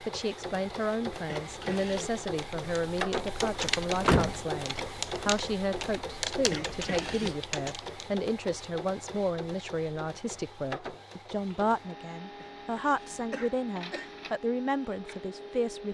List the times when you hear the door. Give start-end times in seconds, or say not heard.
3.4-5.3.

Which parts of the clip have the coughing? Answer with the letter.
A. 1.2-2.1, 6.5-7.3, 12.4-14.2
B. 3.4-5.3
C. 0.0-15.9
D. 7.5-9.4
A.